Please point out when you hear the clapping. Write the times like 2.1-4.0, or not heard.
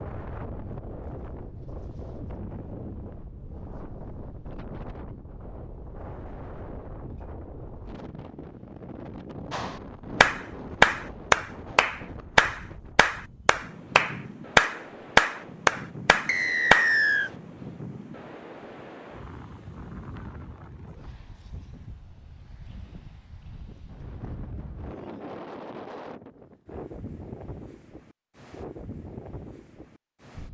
9.5-16.9.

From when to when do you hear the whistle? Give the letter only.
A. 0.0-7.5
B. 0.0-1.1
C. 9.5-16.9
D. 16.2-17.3
D.